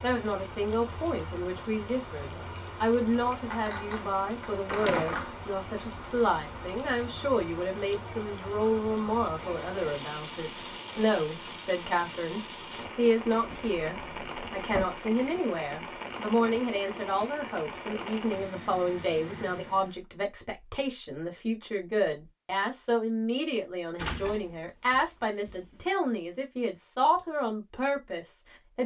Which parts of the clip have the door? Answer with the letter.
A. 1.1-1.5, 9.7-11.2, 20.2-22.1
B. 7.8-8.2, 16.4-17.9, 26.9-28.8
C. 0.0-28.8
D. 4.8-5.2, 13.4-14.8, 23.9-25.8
D.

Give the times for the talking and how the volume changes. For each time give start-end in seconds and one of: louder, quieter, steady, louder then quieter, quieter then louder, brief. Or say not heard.
0.0-28.8 steady.